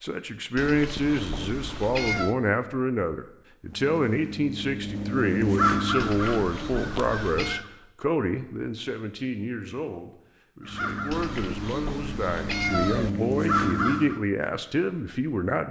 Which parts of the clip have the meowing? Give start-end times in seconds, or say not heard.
0.6-2.4, 6.0-7.7, 11.1-13.1.